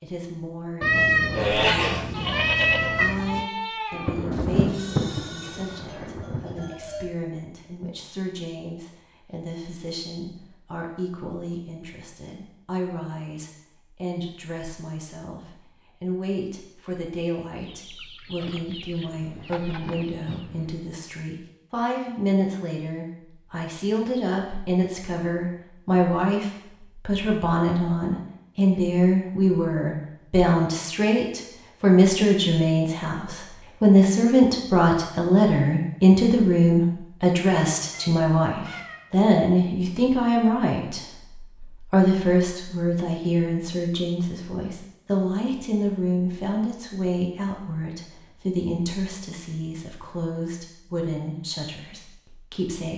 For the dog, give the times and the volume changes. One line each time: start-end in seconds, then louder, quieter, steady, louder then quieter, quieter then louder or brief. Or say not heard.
not heard.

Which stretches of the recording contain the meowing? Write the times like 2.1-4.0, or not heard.
0.8-3.5, 18.9-20.9, 37.9-39.1.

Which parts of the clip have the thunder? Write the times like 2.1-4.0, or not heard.
3.9-6.7.